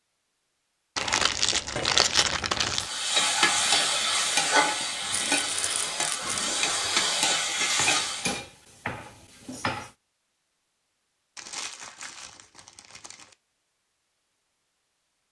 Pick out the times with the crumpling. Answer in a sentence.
The crumpling can be heard from 0.9 to 2.9 s, from 5.1 to 6.3 s and from 11.3 to 13.3 s.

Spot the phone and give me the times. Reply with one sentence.
The phone can't be heard in this clip.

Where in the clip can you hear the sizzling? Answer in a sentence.
You can hear the sizzling from 2.8 to 8.3 s.